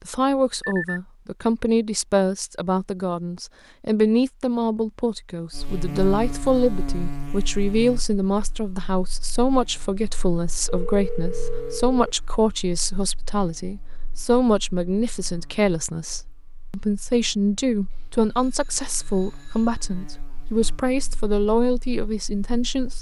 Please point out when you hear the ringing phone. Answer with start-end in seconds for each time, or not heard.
0.6-1.0, 10.7-12.2, 17.9-19.9.